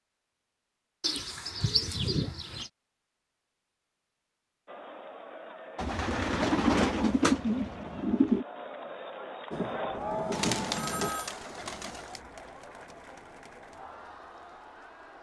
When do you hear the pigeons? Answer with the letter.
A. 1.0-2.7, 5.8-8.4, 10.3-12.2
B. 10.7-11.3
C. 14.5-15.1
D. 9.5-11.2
A.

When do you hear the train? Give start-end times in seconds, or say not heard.
9.5-11.2.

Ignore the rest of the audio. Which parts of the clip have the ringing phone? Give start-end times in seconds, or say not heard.
10.7-11.3.